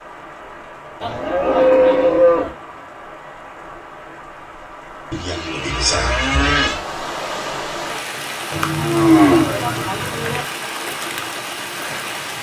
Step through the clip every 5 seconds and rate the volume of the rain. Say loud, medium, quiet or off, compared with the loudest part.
medium, loud, loud.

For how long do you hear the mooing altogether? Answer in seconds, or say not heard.
5 s.